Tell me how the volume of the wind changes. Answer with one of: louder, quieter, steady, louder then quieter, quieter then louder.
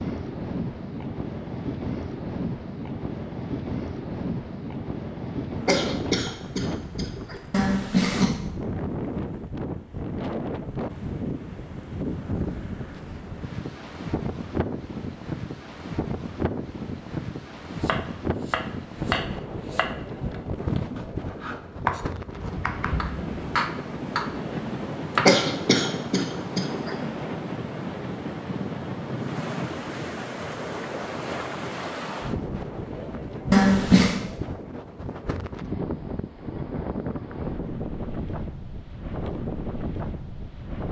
steady.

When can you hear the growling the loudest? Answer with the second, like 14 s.
34 s.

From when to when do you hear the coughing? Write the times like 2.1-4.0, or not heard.
5.7-7.4, 25.2-26.9.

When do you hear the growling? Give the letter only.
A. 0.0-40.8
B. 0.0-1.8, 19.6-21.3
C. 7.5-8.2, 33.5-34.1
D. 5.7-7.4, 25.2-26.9
C.